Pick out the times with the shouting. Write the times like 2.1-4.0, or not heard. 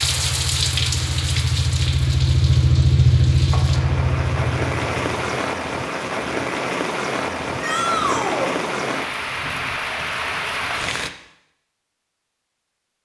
7.6-8.6.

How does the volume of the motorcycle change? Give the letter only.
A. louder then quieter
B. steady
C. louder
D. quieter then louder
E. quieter
A.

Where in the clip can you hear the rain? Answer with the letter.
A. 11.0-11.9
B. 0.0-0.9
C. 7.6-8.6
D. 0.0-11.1
D.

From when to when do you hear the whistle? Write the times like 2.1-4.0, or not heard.
not heard.